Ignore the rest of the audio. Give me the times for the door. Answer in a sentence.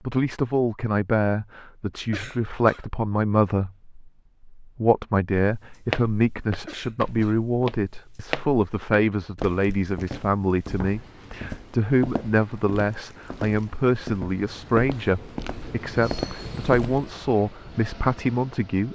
You can't hear the door here.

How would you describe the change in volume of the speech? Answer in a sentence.
The loudness of the speech stays about the same.